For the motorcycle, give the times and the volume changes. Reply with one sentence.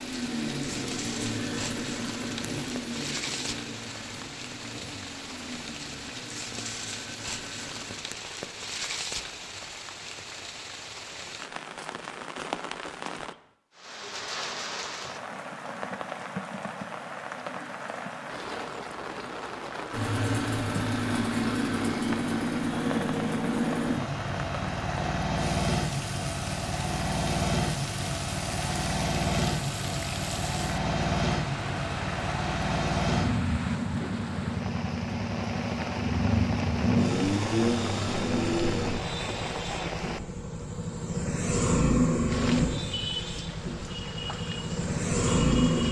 The motorcycle can be heard from 0.0 to 8.0 s, getting quieter; and from 19.9 to 45.8 s, at a steady volume.